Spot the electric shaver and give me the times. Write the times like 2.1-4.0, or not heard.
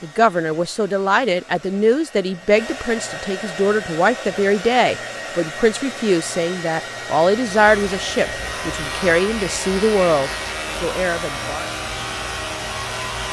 7.5-13.2.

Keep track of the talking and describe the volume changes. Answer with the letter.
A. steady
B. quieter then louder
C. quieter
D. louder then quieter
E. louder
A.